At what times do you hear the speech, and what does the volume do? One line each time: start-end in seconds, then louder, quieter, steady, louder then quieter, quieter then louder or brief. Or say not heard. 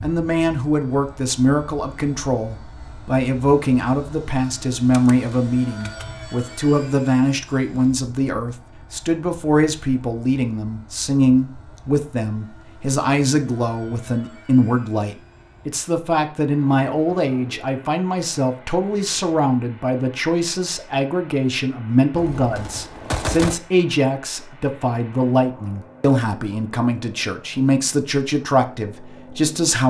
0.0-29.8 steady.